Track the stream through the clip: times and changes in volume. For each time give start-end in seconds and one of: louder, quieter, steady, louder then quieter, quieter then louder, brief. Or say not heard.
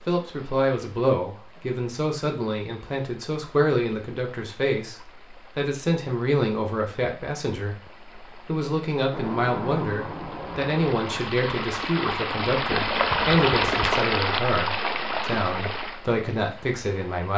0.0-17.3 louder.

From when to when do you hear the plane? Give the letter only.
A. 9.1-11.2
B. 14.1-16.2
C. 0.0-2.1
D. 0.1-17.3
A.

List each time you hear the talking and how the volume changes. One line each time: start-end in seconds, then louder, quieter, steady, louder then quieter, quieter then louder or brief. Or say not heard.
0.1-17.3 steady.